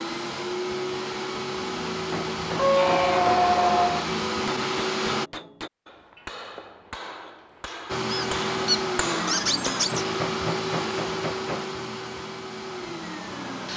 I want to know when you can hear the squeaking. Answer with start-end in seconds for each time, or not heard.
2.5-4.0, 8.1-10.1.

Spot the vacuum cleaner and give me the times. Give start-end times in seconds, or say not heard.
0.0-5.3, 7.8-13.7.